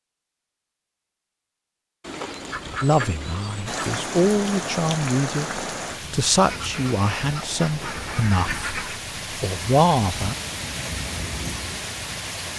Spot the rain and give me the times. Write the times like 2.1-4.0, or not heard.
3.6-12.5.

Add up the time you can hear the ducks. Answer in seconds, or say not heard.
5 s.